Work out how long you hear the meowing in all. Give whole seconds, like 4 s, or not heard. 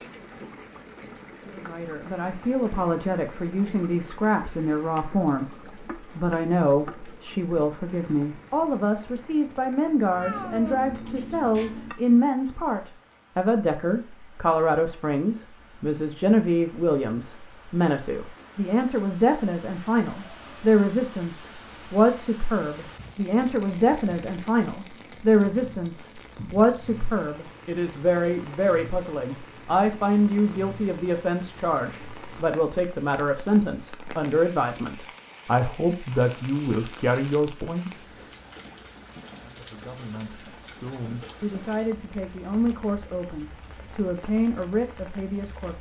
2 s.